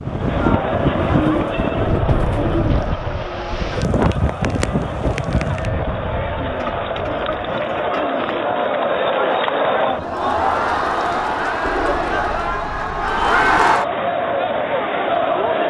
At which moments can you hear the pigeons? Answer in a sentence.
You can hear the pigeons from 0.9 to 2.9 s, from 6.4 to 8.4 s and from 11.7 to 13.7 s.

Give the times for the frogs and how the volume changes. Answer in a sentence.
You can't hear the frogs here.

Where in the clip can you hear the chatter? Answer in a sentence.
The chatter can be heard from 0.0 to 15.6 s.